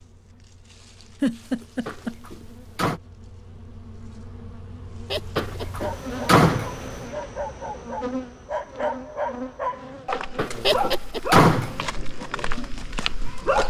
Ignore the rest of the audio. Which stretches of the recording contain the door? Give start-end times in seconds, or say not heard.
1.9-3.0, 5.3-6.7, 10.3-11.8.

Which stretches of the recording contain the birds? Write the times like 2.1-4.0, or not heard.
not heard.